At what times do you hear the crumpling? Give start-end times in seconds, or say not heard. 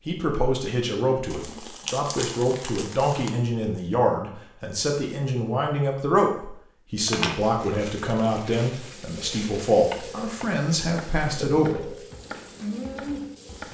1.3-3.3, 7.0-9.7.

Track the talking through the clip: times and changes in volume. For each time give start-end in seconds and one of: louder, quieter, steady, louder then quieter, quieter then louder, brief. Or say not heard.
0.1-12.0 steady.